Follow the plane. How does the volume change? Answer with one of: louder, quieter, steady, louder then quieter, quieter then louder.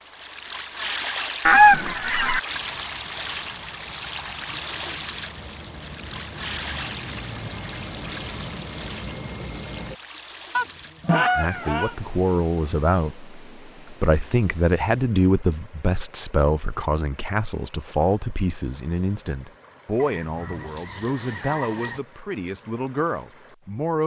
louder.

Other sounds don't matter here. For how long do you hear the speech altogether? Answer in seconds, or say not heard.
13 s.